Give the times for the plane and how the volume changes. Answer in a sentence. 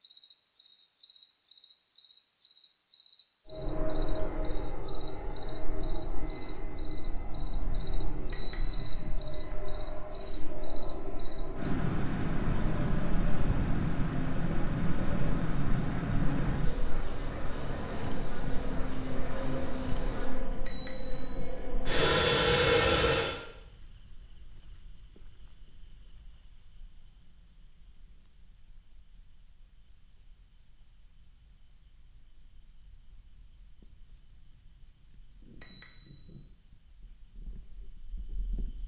The plane can be heard from 3.5 to 23.4 s, getting louder.